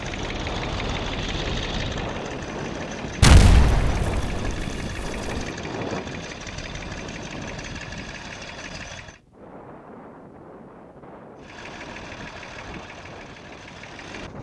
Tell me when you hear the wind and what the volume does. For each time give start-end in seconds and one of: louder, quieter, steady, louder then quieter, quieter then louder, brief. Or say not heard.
0.0-14.3 quieter.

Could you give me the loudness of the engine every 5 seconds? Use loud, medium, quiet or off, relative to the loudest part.
loud, loud, medium.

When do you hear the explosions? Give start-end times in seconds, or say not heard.
3.2-5.4.